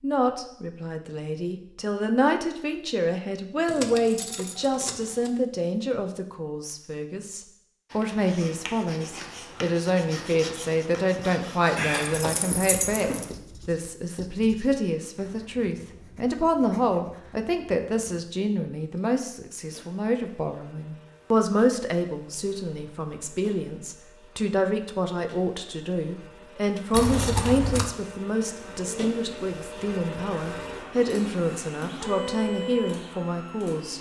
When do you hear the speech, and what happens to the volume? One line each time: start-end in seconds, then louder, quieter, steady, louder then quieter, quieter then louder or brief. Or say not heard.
0.0-33.9 steady.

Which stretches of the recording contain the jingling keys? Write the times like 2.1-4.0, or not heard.
3.6-5.3, 11.8-13.3, 26.9-27.9.